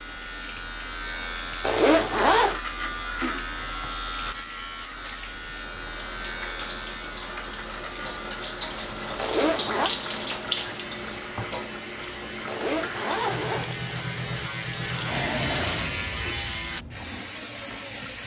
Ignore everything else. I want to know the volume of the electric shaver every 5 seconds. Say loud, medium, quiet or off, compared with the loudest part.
loud, medium, medium, loud.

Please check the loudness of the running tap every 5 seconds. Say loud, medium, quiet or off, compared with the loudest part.
quiet, loud, loud, loud.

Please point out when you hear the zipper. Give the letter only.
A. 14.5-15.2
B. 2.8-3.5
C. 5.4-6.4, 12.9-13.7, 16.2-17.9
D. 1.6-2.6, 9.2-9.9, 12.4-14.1
D.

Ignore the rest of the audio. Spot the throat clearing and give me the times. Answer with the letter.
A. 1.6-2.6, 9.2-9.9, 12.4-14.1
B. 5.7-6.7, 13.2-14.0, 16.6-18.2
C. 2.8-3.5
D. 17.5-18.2
C.